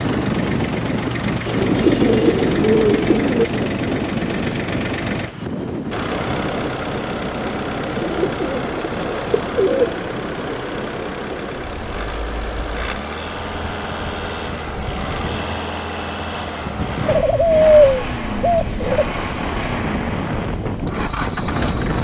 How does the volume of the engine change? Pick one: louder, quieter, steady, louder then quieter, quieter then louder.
steady.